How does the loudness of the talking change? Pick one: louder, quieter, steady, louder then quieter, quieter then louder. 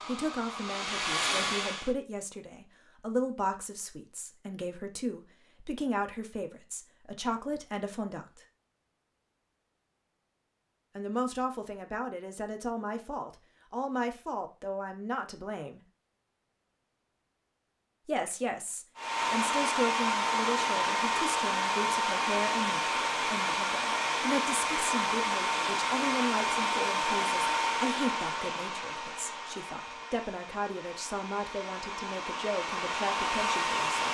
steady.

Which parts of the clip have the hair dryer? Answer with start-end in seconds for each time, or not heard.
0.0-1.9, 18.9-34.1.